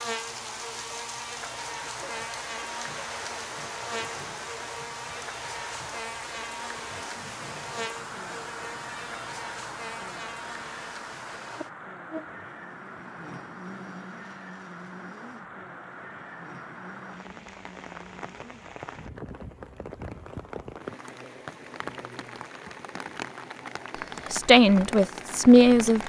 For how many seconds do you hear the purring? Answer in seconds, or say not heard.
not heard.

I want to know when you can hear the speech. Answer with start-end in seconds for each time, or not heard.
24.3-26.0.